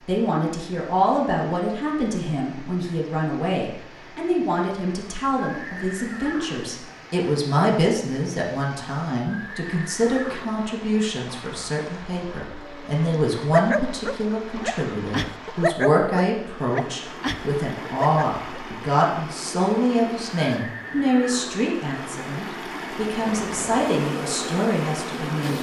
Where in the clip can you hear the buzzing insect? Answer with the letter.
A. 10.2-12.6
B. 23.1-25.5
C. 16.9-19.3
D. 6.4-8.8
B.